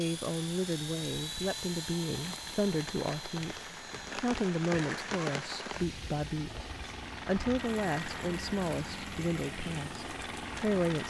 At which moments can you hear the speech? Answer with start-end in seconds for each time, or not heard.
0.0-11.0.